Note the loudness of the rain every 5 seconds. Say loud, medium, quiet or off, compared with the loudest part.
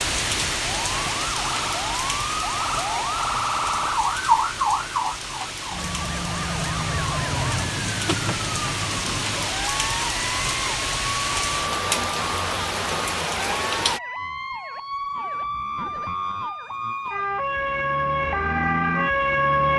loud, loud, loud, off.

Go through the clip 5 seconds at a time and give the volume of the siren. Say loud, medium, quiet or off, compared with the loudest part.
loud, medium, medium, loud.